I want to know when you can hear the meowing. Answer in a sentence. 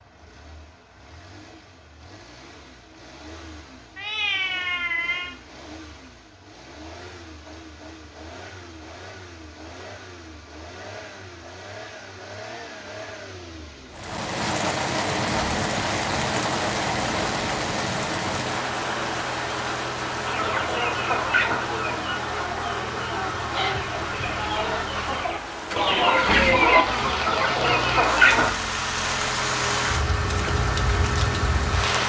You can hear the meowing from 4.0 to 5.3 s.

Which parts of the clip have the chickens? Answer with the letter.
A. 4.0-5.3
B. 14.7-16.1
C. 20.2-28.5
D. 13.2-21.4
C.